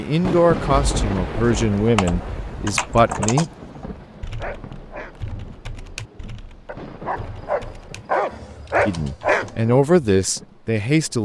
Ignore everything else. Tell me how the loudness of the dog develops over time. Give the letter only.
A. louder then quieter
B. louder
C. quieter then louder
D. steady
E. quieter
C.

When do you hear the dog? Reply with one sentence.
You can hear the dog from 4.0 to 9.8 s.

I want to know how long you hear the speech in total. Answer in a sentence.
The speech can be heard for 6 seconds in total.